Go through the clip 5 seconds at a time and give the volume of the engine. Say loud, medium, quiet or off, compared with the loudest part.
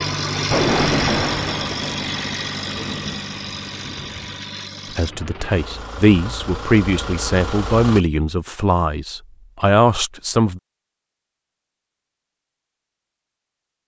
loud, medium, off.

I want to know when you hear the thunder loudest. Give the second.
1 s.